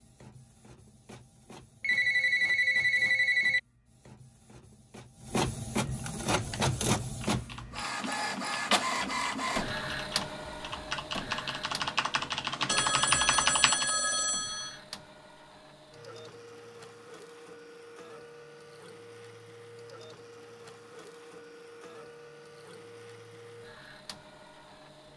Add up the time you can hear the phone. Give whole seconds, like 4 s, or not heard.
4 s.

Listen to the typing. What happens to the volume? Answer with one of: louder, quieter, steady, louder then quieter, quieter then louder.
louder.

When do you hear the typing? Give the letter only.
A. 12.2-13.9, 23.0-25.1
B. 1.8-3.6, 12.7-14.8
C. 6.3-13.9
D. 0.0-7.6
C.